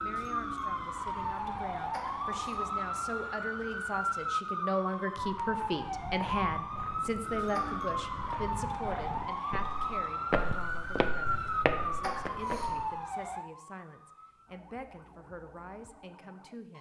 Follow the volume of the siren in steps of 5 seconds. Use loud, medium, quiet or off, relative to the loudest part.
loud, loud, loud, quiet.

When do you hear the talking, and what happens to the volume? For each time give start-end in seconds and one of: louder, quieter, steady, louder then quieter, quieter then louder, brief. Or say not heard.
0.0-16.7 louder then quieter.